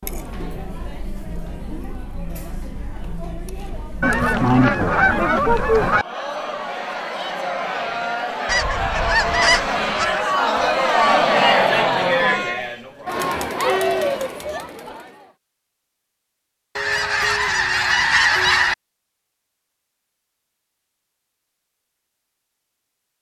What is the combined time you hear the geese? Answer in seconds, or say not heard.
6 s.